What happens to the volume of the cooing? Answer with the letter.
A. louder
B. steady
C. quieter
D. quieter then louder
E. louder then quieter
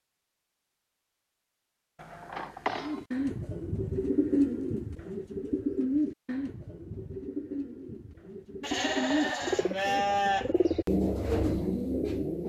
D.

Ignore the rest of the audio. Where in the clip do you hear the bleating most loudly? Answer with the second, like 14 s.
10 s.